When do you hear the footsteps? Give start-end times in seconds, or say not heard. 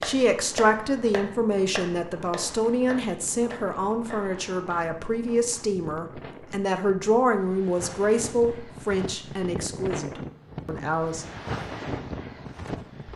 not heard.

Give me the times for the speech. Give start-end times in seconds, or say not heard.
0.0-11.3.